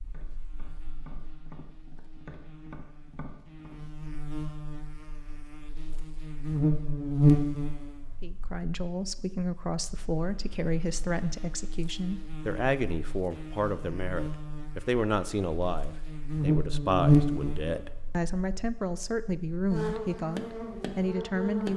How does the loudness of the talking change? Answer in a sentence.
The volume of the talking stays about the same.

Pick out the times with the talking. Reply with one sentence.
You can hear the talking from 8.2 to 21.7 s.